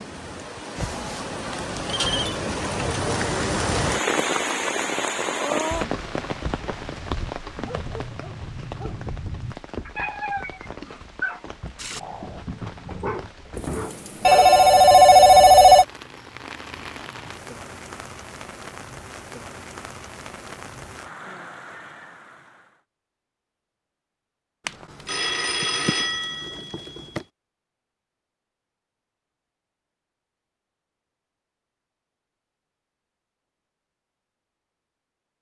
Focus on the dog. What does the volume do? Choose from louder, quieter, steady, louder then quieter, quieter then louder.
louder.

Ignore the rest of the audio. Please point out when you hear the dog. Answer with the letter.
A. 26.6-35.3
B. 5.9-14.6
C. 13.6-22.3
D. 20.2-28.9
B.